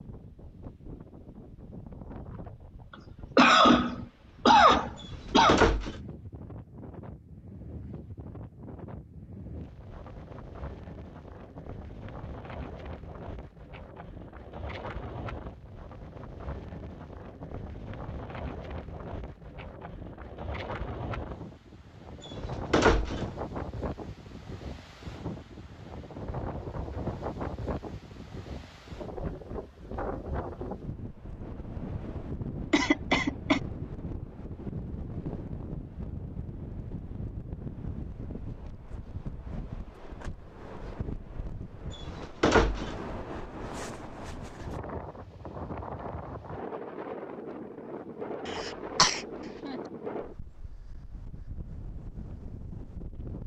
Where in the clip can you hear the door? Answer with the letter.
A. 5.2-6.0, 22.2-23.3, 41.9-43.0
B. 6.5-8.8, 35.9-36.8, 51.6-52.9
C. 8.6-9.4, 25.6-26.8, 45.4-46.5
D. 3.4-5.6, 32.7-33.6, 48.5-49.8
A.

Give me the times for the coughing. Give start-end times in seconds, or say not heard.
3.4-5.6, 32.7-33.6, 48.5-49.8.